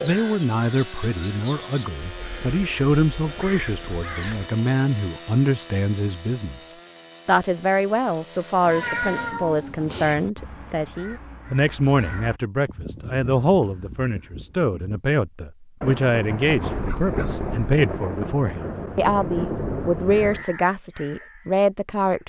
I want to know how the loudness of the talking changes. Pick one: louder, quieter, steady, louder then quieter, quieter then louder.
steady.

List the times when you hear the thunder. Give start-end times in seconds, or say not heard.
15.8-20.4.